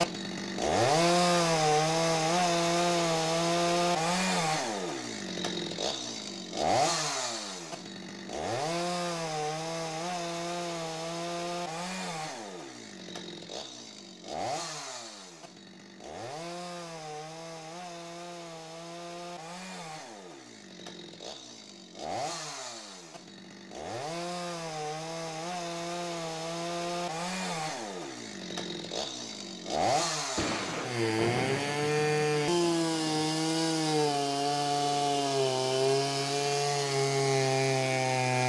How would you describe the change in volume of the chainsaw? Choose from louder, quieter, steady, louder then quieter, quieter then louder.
quieter then louder.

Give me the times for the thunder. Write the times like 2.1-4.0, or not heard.
30.4-33.3.